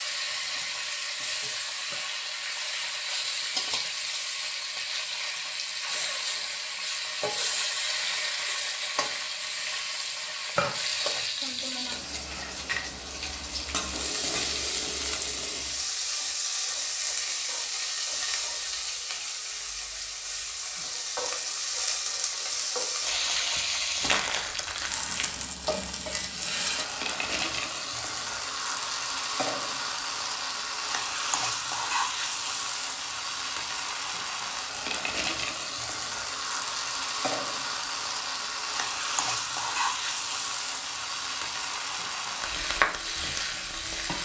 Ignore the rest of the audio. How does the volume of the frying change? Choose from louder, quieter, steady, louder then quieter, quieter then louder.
steady.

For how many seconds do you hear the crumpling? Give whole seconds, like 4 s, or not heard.
4 s.